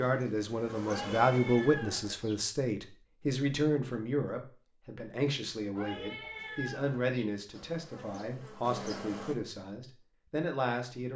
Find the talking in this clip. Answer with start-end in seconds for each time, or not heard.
0.0-11.1.